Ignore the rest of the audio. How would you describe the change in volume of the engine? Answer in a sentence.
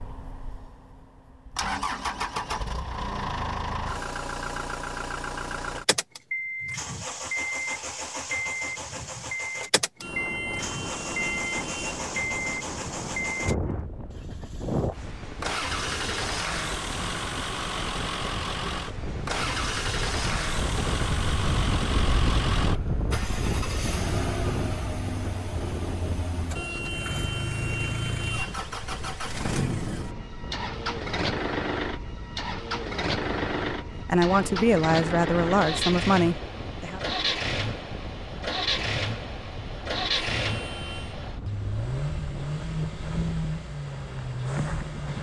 The loudness of the engine stays about the same.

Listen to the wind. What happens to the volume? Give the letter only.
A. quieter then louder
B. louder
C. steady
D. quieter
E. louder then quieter
E.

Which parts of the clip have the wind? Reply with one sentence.
You can hear the wind from 9.9 to 45.1 s.